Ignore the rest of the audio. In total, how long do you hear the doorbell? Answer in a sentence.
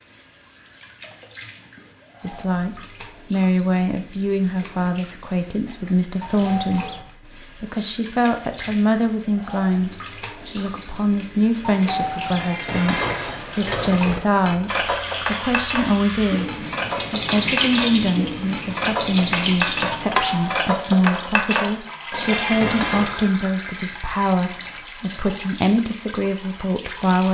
You can hear the doorbell for 3 seconds altogether.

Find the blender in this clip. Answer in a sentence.
You can't hear the blender here.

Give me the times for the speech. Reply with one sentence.
You can hear the speech from 2.2 to 27.2 s.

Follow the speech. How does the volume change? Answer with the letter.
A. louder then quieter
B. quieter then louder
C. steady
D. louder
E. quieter
C.